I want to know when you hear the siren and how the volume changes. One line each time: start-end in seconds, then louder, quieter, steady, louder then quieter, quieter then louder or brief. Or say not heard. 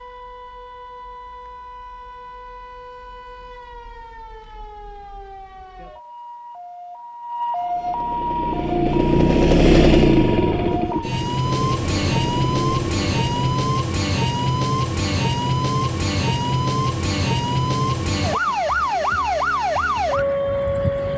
0.0-21.1 louder.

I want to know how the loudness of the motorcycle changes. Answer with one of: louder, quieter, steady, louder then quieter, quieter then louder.
louder then quieter.